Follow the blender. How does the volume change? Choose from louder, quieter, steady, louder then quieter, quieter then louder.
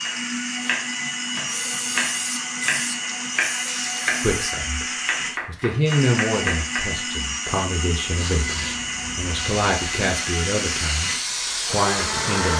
steady.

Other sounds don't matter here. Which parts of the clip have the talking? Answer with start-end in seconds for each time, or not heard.
4.2-4.8, 5.5-12.5.